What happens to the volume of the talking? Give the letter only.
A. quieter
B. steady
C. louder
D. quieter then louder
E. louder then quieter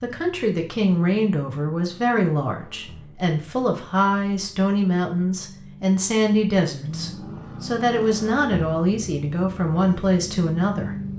B.